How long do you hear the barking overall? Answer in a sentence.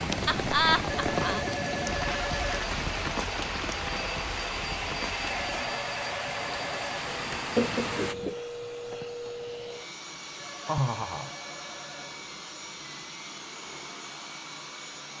You can't hear the barking here.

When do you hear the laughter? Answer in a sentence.
The laughter can be heard from 0.2 to 1.4 s, from 7.5 to 8.3 s and from 10.7 to 11.3 s.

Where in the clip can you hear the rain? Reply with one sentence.
You can hear the rain from 0.0 to 8.2 s.